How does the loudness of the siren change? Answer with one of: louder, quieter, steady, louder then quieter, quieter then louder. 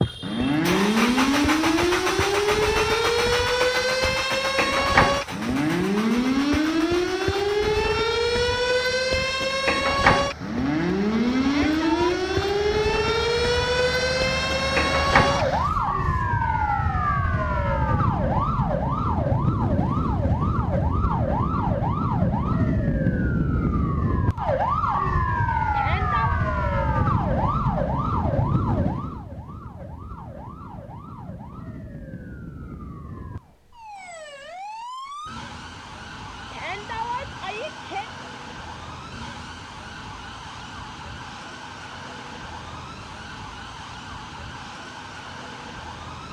quieter.